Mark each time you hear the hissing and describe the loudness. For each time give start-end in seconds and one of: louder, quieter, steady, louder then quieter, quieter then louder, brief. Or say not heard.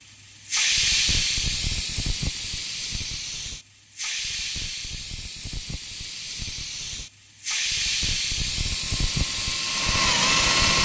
0.1-10.8 quieter then louder.